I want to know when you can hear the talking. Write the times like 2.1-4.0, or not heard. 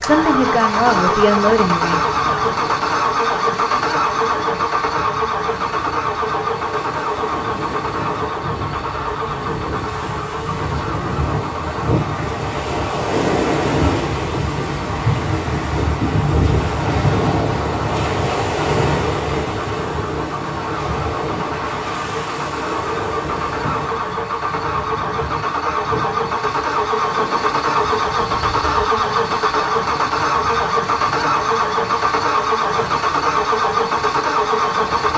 0.0-2.0.